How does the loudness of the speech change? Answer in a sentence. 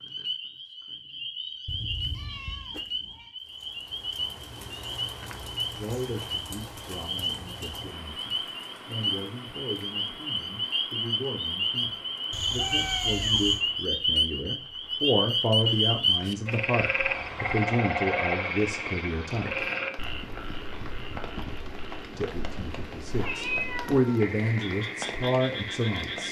The volume of the speech goes up.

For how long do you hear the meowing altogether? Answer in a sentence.
You can hear the meowing for 4 seconds altogether.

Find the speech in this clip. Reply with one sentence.
You can hear the speech from 5.8 to 19.7 s and from 22.1 to 26.2 s.